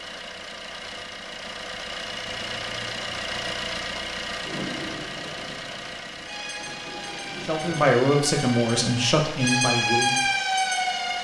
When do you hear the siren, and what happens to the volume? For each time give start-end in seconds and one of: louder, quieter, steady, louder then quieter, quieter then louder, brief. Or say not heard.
6.2-11.1 louder.